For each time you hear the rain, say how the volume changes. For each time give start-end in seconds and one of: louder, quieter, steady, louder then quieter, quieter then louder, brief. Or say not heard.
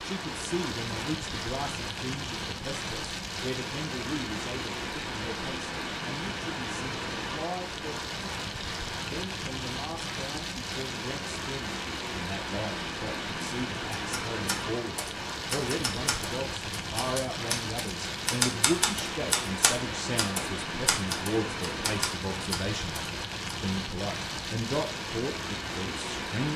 0.0-26.5 steady.